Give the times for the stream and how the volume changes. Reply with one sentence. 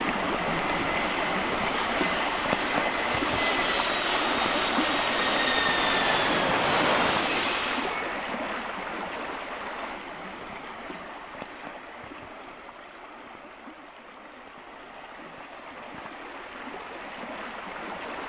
The stream can be heard from 0.0 to 18.2 s, getting quieter.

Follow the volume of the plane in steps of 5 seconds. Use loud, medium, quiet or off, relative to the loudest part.
medium, loud, off, off.